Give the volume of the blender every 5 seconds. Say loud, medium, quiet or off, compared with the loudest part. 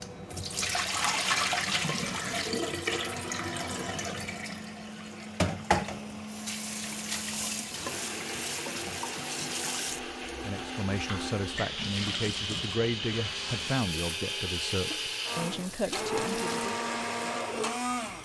medium, medium, loud, loud.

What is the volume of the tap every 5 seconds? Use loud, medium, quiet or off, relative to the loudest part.
loud, loud, medium, quiet.